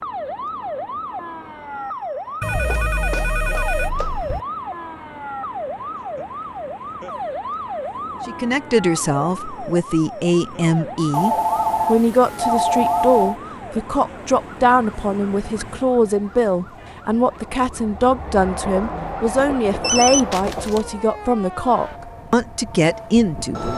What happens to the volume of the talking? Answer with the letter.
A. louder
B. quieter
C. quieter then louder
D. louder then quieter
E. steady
E.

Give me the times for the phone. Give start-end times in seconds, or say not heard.
2.4-4.5, 11.1-13.4, 19.8-20.9.